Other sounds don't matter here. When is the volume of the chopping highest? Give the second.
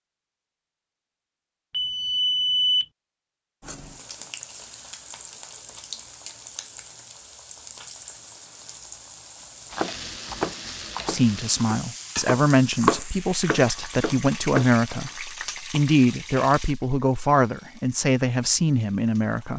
13 s.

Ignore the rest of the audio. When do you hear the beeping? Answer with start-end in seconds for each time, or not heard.
1.7-2.9, 17.1-17.9.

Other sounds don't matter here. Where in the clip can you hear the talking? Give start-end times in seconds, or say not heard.
11.1-19.5.